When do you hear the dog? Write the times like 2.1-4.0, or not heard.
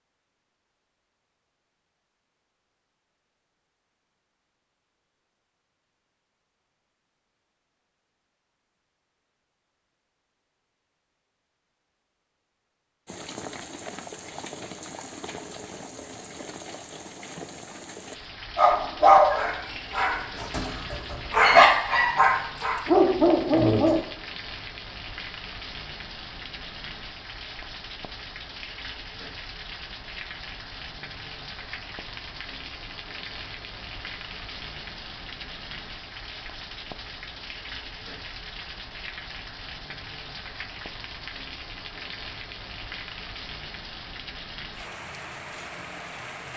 18.6-24.0.